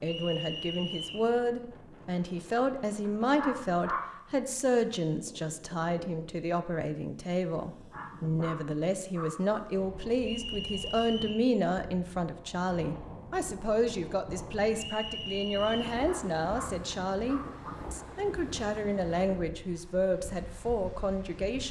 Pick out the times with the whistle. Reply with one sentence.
The whistle can be heard from 0.1 to 1.3 s, from 10.2 to 11.4 s and from 14.8 to 15.8 s.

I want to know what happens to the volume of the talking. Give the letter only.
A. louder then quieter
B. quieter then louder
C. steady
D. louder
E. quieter
C.